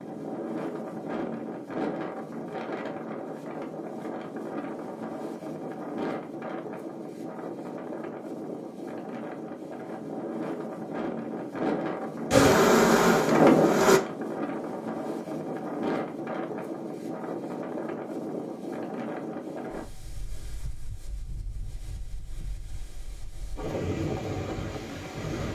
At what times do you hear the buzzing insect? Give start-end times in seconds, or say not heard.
12.3-14.0.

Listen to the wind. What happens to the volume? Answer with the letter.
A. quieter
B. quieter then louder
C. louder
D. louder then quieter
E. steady
D.